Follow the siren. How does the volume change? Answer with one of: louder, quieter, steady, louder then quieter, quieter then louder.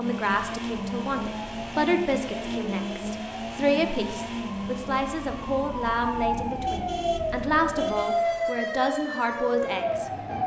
louder.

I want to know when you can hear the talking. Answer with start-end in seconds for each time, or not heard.
0.0-10.1.